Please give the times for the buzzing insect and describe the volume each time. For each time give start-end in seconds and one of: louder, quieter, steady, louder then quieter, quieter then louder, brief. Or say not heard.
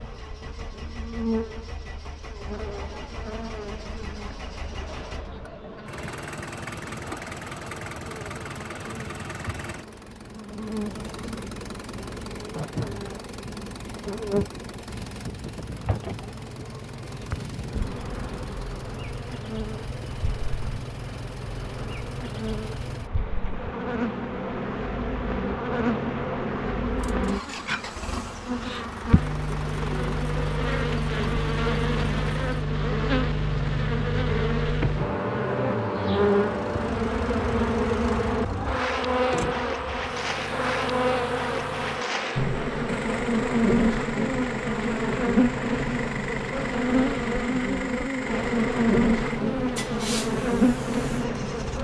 0.0-51.7 louder.